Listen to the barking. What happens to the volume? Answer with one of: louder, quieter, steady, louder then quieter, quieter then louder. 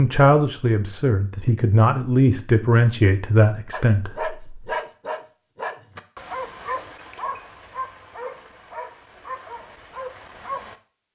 quieter.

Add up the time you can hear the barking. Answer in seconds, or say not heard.
7 s.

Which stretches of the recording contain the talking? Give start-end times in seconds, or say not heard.
0.0-4.7.